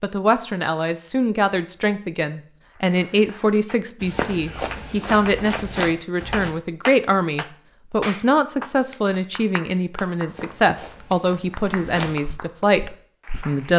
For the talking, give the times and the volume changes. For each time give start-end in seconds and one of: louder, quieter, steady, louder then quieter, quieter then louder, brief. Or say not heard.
0.0-13.7 steady.